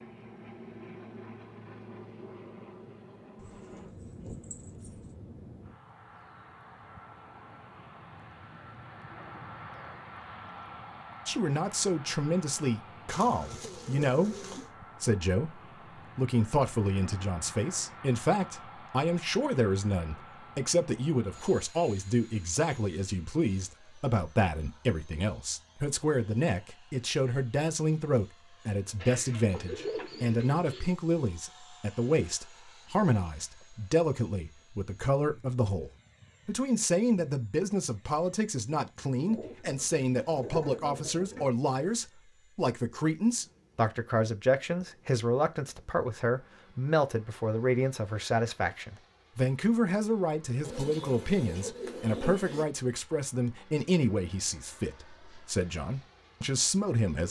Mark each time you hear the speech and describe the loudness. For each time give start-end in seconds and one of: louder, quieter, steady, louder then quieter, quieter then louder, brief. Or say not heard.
11.2-57.2 steady.